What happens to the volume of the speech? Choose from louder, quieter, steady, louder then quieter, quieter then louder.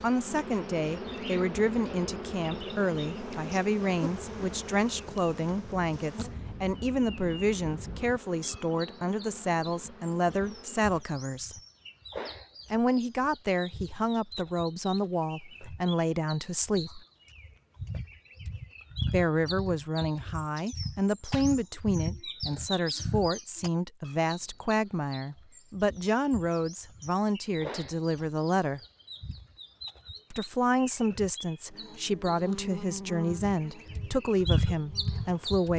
steady.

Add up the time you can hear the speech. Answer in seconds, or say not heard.
31 s.